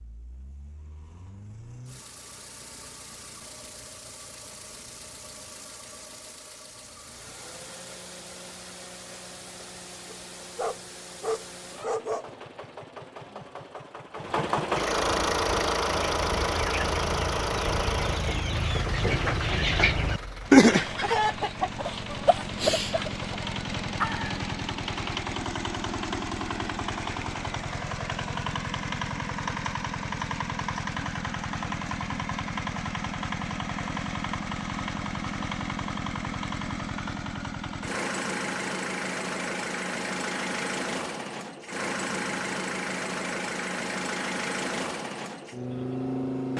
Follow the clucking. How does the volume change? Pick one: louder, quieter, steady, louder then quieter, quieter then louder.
louder then quieter.